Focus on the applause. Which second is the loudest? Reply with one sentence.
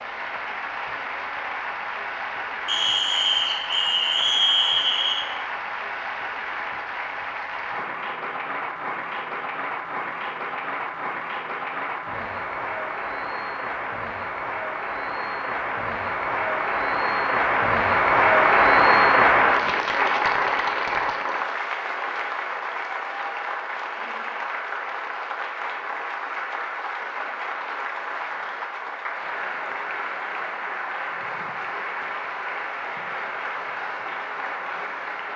The loudest moment of the applause is at 19 seconds.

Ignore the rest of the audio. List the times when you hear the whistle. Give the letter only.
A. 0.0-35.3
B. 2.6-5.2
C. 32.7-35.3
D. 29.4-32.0
B.